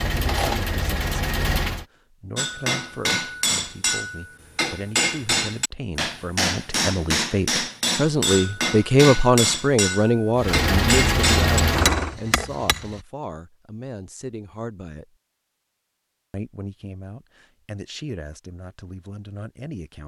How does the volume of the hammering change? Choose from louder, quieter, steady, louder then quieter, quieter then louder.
steady.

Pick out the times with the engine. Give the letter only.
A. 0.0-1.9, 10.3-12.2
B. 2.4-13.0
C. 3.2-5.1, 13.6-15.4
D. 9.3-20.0
A.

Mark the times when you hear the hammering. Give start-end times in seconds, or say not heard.
2.4-13.0.